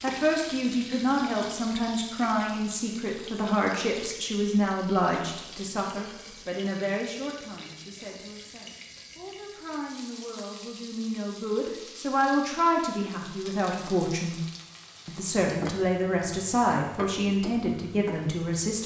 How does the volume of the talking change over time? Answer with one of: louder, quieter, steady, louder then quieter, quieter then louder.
quieter then louder.